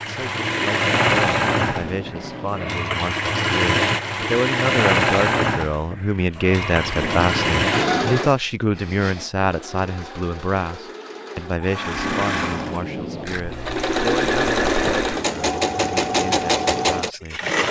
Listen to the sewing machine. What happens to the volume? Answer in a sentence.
The volume of the sewing machine goes down, then up.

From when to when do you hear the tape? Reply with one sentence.
The tape can be heard from 1.6 to 2.9 s, from 6.8 to 8.2 s and from 11.9 to 13.4 s.